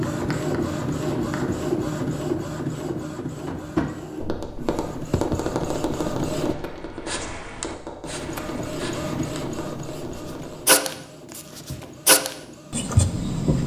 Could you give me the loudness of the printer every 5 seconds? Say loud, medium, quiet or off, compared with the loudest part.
loud, loud, quiet.